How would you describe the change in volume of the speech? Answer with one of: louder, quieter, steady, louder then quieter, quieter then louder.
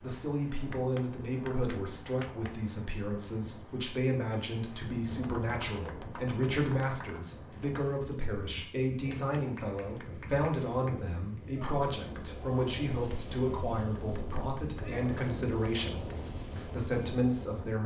steady.